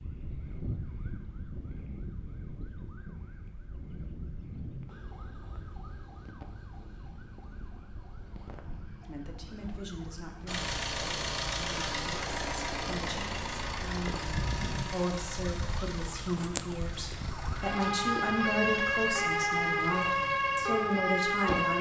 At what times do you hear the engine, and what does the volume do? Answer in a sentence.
You can hear the engine from 10.4 to 21.7 s, getting quieter.